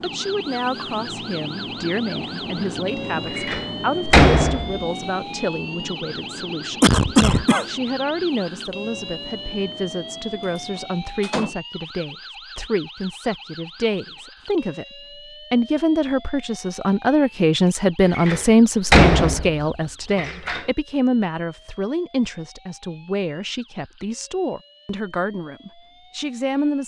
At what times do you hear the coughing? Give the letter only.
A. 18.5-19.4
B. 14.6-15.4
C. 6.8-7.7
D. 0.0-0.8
C.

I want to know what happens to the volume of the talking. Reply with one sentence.
The volume of the talking goes up, then down.